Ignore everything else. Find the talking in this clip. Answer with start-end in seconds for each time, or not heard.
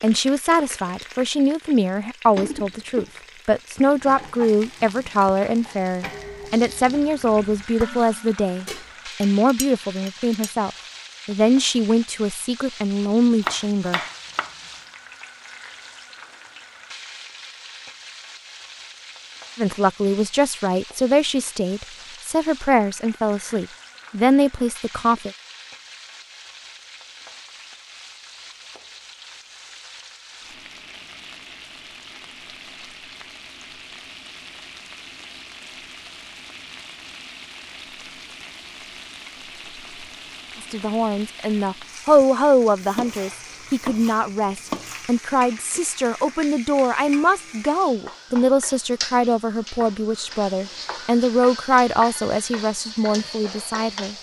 0.0-14.0, 19.6-25.3, 40.6-54.1.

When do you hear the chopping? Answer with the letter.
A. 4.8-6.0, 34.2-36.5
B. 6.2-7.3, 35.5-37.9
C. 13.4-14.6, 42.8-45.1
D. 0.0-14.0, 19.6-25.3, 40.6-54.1
C.